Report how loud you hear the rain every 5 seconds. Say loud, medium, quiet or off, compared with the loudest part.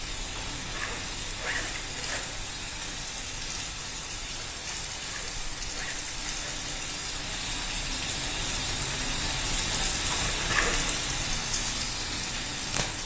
medium, loud, loud.